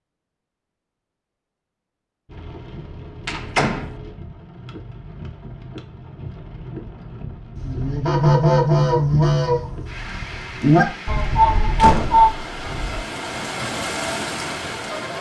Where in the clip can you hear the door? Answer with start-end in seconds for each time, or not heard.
3.2-3.9, 11.8-12.3.